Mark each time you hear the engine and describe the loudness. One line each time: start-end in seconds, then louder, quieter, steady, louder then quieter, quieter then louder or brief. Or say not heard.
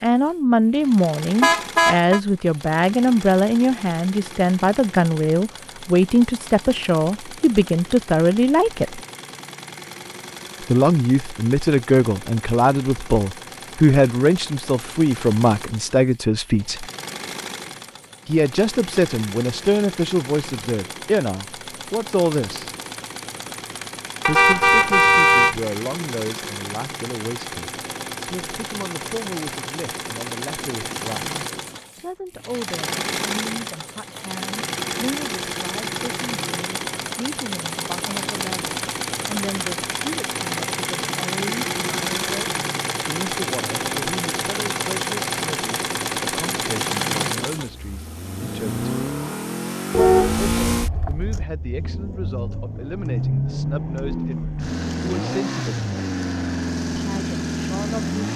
0.0-58.3 louder.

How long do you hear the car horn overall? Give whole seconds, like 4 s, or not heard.
4 s.